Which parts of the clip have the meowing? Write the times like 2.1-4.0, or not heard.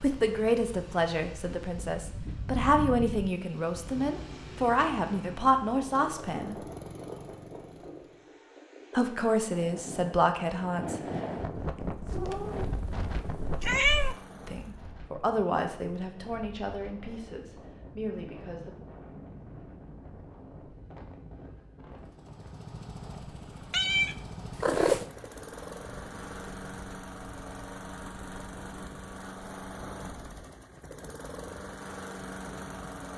12.1-14.2, 23.7-25.1.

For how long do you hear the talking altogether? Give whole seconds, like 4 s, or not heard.
13 s.